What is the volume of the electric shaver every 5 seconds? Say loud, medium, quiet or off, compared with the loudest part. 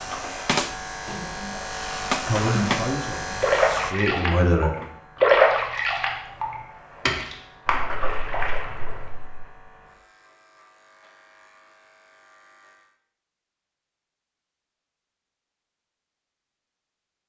loud, quiet, quiet, off.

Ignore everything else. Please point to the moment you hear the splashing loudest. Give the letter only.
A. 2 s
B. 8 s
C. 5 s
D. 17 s
C.